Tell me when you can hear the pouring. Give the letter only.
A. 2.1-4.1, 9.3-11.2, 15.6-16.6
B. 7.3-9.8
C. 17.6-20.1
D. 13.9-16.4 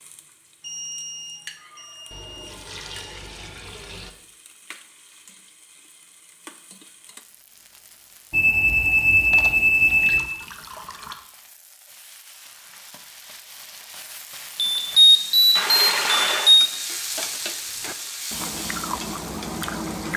A.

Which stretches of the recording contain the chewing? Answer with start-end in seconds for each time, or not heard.
17.6-20.1.